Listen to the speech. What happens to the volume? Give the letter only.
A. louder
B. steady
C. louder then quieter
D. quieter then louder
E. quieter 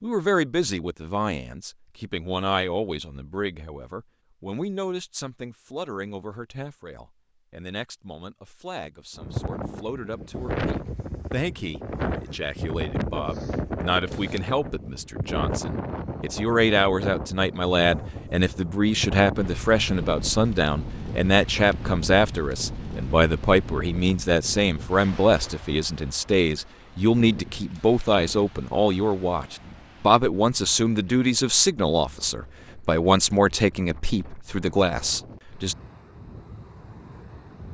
A.